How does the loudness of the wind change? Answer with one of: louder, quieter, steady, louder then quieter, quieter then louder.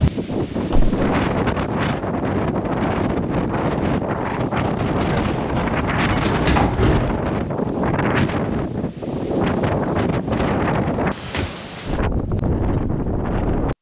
steady.